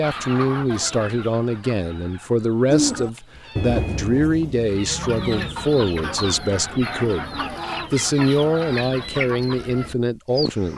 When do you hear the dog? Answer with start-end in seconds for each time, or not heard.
not heard.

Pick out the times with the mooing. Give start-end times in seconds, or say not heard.
2.7-7.6.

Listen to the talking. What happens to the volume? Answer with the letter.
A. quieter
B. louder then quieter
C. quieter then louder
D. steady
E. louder
D.